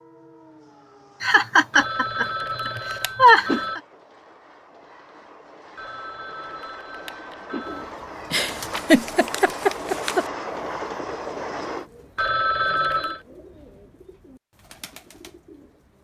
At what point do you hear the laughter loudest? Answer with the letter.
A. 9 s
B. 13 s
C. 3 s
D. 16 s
C.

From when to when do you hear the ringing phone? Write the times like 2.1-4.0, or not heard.
1.7-3.8, 5.8-7.9, 12.2-13.2.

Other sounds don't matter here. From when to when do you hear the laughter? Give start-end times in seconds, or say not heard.
1.2-3.8, 8.3-10.2.